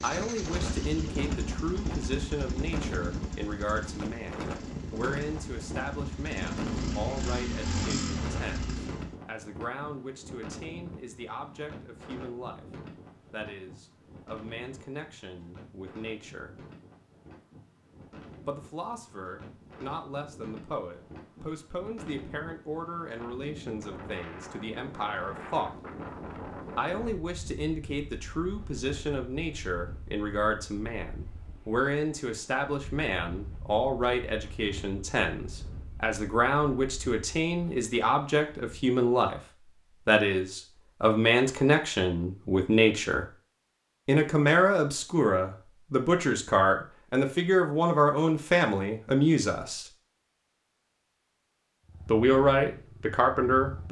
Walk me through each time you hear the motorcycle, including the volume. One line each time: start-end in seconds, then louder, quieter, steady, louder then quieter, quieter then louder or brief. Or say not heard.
0.0-9.2 quieter then louder
51.9-53.8 brief.